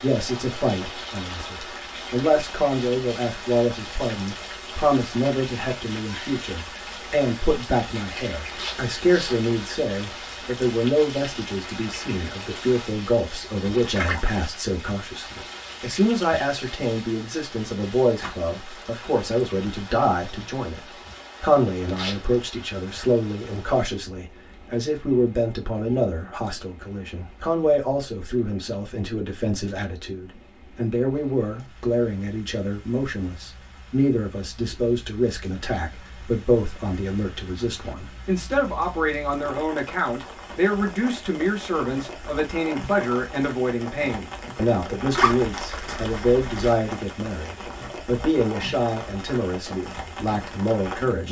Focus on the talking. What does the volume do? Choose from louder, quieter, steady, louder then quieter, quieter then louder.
steady.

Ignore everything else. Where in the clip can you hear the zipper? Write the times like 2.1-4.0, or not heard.
8.4-9.4, 21.9-22.4, 45.1-46.8.